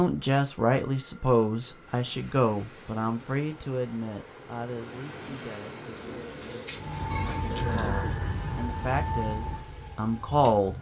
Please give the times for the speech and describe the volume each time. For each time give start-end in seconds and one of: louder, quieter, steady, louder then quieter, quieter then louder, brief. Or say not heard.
0.0-10.7 quieter then louder.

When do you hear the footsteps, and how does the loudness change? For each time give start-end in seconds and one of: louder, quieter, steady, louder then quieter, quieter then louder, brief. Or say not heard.
not heard.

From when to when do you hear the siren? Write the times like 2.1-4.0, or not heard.
6.8-10.7.